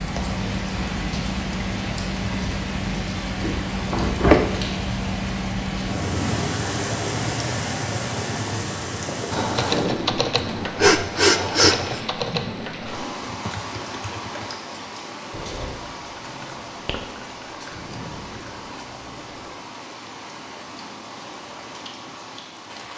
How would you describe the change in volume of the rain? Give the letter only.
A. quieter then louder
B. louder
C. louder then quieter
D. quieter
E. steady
D.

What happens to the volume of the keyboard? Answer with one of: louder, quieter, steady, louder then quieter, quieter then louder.
quieter.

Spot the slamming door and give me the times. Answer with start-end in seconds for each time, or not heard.
3.4-4.4.